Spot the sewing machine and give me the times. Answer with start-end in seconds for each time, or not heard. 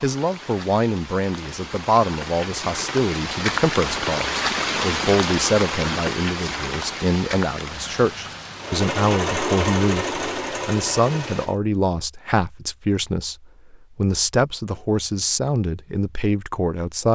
8.6-11.6.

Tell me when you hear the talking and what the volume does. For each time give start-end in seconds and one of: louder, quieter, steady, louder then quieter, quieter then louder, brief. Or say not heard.
0.0-17.0 steady.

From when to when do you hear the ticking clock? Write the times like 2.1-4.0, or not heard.
not heard.